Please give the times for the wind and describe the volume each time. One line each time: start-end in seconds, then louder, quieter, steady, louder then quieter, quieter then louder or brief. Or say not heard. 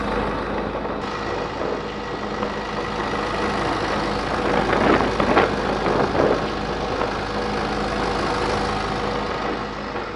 0.0-10.1 louder then quieter.